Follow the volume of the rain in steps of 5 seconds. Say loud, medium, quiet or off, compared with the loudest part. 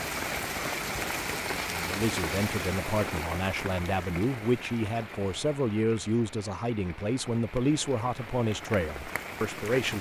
loud, medium.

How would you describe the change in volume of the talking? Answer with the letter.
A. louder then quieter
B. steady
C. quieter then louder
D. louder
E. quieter
B.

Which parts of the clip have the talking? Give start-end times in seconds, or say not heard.
1.6-9.9.